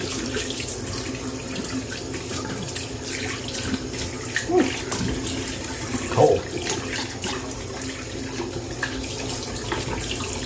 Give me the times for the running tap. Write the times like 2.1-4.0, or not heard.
0.0-10.4.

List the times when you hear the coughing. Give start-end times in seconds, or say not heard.
2.3-2.8, 7.0-7.5.